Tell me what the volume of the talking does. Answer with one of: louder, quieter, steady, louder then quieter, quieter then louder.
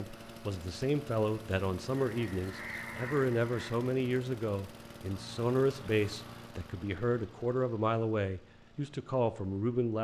steady.